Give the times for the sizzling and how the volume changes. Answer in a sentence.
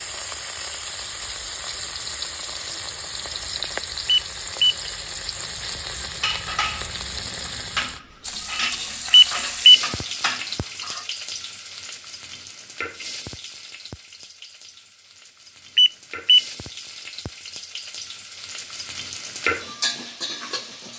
You can hear the sizzling from 0.0 to 20.9 s, getting quieter then louder.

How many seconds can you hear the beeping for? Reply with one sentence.
The beeping can be heard for 2 seconds in total.